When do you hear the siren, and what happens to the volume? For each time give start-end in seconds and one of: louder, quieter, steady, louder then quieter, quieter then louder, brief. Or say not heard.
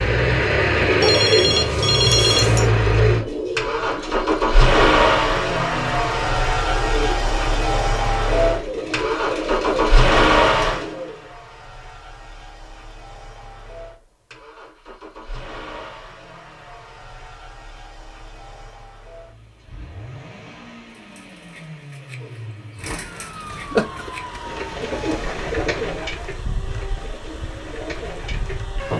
22.9-28.9 quieter.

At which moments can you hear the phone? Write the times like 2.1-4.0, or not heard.
1.0-2.7.